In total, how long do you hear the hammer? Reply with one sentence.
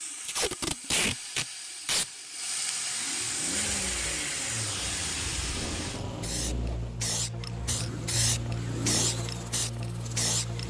The hammer can't be heard in this clip.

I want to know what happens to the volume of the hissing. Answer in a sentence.
The loudness of the hissing goes up.